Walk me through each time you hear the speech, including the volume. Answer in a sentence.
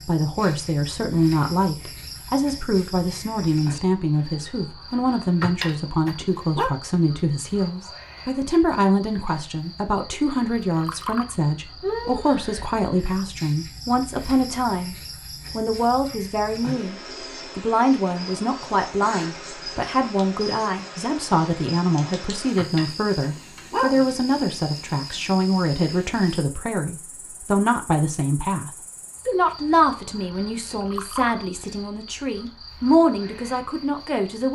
You can hear the speech from 0.1 to 34.4 s, at a steady volume.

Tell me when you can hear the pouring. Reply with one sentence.
The pouring can be heard from 10.6 to 11.3 s and from 30.4 to 31.4 s.